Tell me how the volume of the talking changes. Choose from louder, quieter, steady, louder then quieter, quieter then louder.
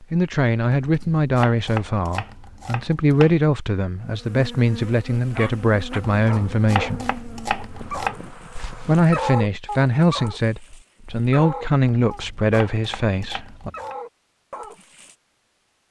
steady.